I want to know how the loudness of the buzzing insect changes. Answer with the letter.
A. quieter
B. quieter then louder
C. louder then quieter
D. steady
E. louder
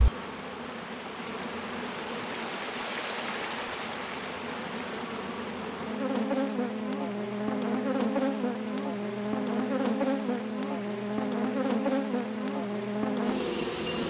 E.